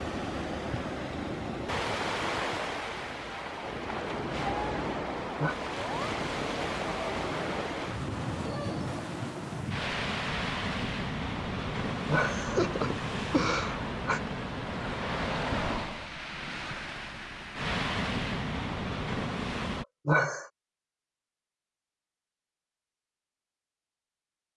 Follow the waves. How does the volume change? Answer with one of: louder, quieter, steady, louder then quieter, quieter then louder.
steady.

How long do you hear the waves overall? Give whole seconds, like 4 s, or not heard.
20 s.